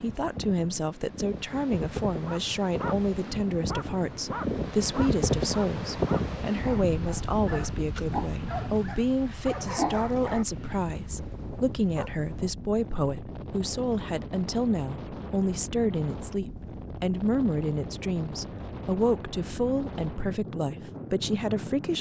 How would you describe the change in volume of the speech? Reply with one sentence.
The volume of the speech stays about the same.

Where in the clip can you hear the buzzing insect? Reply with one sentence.
The buzzing insect can't be heard in this clip.